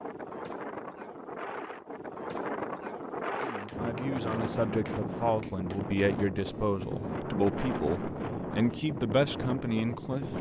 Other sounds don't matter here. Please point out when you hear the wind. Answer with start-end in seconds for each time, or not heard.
0.0-10.3.